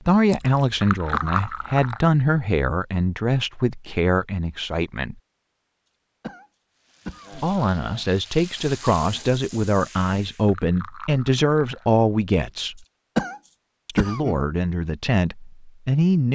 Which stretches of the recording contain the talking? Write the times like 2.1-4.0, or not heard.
0.1-5.2, 7.3-12.8, 13.8-16.2.